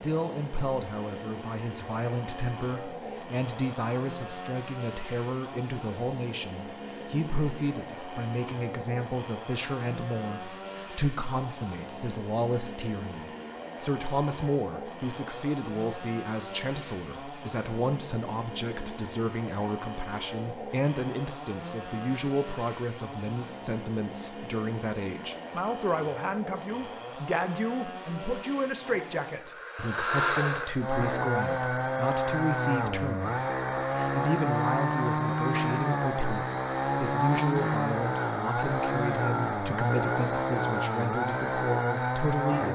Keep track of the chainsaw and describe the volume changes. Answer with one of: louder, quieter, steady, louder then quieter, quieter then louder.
louder.